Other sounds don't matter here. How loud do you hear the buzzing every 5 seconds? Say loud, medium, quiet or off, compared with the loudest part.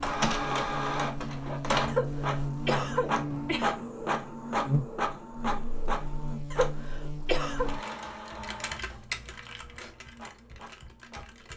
loud, medium, off.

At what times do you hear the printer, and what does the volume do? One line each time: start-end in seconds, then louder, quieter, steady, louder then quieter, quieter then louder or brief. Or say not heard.
0.0-11.5 quieter.